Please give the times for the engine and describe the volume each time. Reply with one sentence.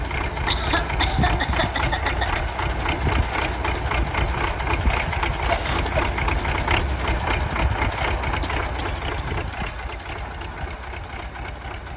The engine can be heard from 0.0 to 11.9 s, getting quieter.